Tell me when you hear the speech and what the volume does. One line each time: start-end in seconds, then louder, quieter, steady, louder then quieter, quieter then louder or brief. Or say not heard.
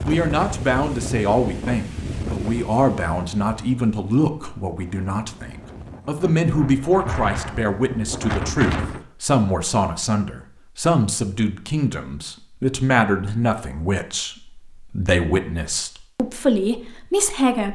0.0-17.7 steady.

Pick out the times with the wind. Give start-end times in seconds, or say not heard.
0.0-9.1.